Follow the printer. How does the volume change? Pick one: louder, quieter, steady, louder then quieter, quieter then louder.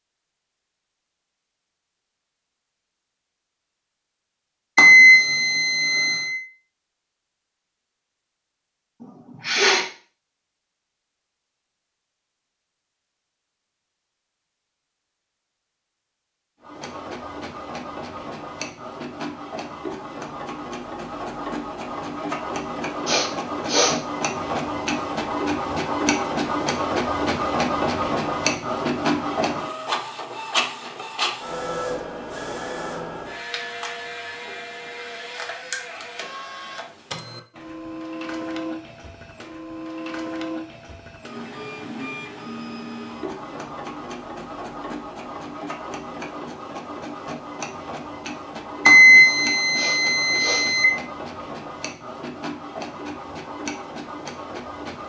louder then quieter.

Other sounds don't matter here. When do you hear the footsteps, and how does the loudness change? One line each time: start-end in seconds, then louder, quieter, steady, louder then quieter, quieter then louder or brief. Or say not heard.
not heard.